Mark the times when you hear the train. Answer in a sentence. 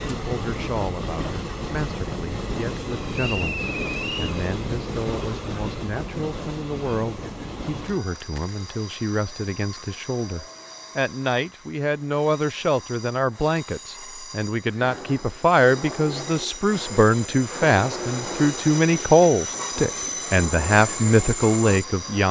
The train can be heard from 0.0 to 22.2 s.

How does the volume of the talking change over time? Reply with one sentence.
The loudness of the talking goes up.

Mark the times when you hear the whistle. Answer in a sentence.
You can hear the whistle from 3.1 to 4.3 s.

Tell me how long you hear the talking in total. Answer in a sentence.
You can hear the talking for 22 seconds altogether.